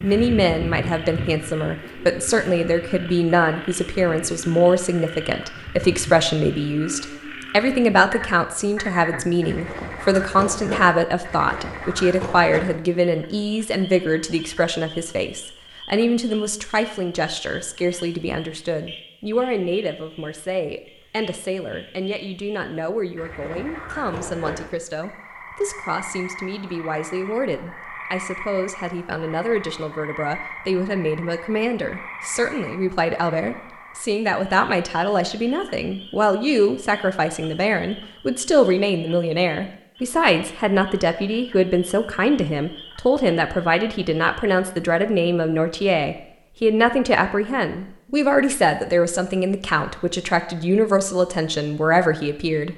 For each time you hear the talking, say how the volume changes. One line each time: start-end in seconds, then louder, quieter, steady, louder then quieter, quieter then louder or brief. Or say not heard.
0.0-52.7 quieter then louder.